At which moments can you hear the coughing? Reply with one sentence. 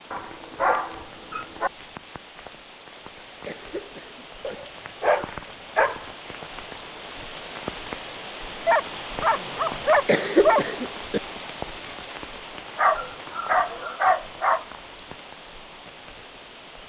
The coughing can be heard from 3.5 to 4.5 s and from 10.1 to 11.2 s.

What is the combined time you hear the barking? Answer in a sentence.
You can hear the barking for 7 seconds altogether.